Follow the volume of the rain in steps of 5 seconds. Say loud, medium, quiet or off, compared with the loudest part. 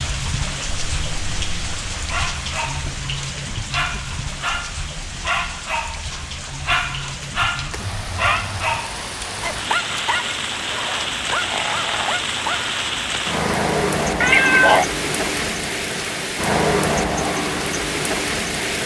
medium, medium, loud, loud.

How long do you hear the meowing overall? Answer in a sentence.
The meowing can be heard for 3 seconds in total.